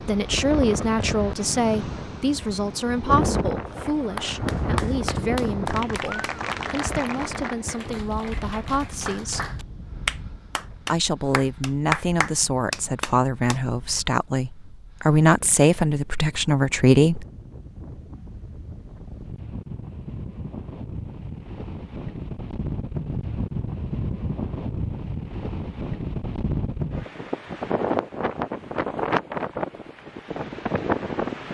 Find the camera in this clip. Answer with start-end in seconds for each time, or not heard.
not heard.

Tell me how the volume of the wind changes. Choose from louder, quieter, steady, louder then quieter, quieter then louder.
quieter then louder.